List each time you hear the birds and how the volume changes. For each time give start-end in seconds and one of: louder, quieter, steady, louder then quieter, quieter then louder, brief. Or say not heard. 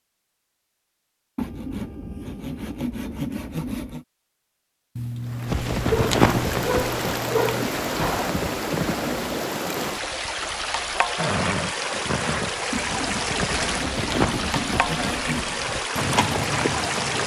not heard.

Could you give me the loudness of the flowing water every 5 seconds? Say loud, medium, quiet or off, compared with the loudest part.
off, loud, loud, loud.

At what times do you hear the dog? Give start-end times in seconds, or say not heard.
5.0-7.7.